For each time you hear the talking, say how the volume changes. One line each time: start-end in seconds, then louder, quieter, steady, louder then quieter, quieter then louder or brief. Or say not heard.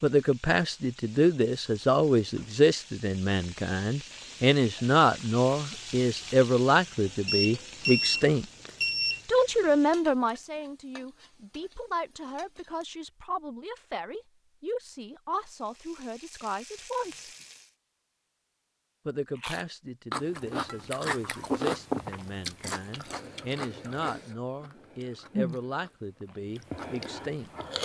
0.0-8.4 steady
9.2-17.3 quieter
19.1-27.5 steady.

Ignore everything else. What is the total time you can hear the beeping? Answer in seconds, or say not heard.
2 s.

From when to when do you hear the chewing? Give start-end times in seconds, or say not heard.
19.4-25.9, 26.6-27.8.